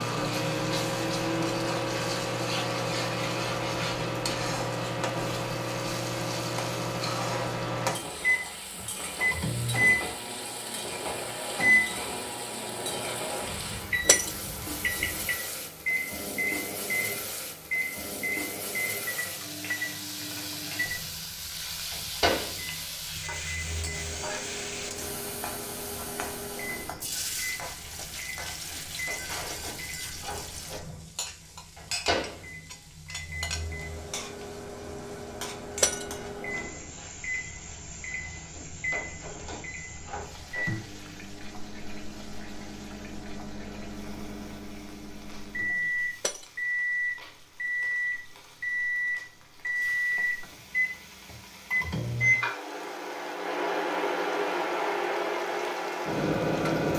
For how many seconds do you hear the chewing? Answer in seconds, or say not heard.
not heard.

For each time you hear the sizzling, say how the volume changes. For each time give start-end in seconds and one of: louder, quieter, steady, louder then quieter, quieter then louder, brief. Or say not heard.
0.0-56.9 quieter.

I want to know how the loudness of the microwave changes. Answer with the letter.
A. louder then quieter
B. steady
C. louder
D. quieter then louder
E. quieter
D.